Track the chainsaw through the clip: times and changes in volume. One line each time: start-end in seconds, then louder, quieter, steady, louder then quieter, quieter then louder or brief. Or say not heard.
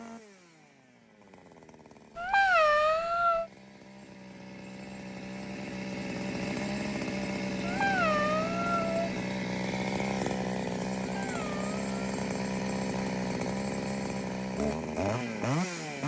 0.0-16.0 louder.